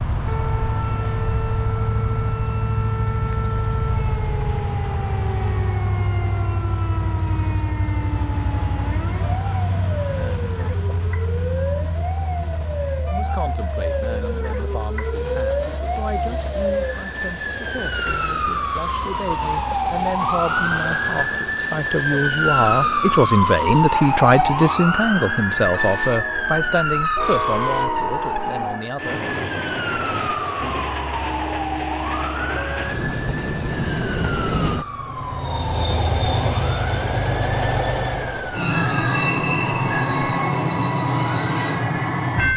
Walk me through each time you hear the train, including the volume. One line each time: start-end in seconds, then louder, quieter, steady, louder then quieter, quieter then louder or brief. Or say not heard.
0.0-42.5 quieter then louder.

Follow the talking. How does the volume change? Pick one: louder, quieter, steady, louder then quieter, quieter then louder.
louder then quieter.